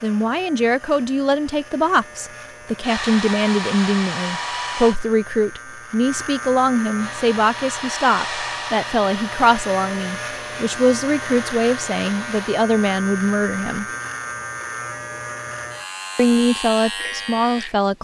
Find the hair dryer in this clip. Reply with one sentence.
You can hear the hair dryer from 2.8 to 5.0 s and from 7.0 to 12.6 s.